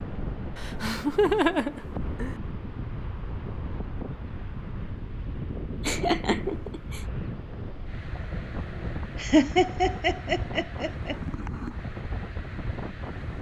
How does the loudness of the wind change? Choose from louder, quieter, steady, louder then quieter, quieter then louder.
steady.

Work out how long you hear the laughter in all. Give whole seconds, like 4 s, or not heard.
5 s.